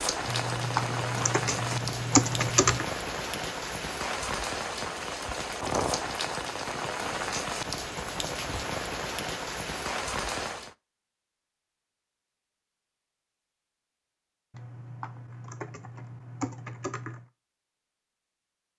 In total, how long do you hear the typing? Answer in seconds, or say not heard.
5 s.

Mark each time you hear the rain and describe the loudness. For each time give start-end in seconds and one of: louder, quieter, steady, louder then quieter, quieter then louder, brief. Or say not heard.
0.0-10.8 steady.